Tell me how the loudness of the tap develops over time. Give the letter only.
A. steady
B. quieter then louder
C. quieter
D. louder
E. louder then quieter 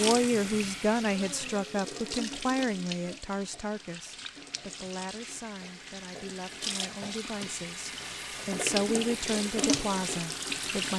B.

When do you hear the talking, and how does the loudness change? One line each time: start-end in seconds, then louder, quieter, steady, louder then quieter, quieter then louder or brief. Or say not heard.
0.0-10.9 quieter then louder.